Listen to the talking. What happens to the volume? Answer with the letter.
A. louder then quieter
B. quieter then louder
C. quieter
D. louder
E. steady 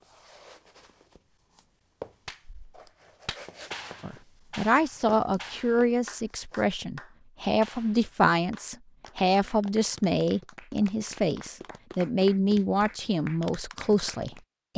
E.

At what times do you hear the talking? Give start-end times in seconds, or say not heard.
4.0-14.7.